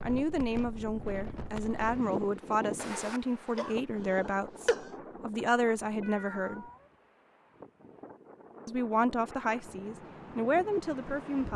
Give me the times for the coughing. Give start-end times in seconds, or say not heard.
3.5-4.9.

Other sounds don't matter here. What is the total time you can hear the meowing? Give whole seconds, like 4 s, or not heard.
2 s.